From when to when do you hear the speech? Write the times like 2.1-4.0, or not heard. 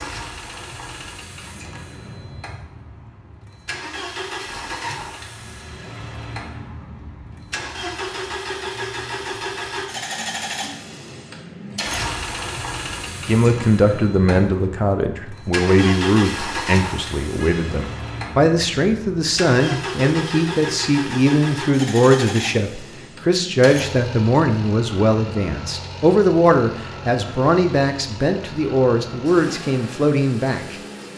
13.2-31.1.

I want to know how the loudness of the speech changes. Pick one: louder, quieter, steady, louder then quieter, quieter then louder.
steady.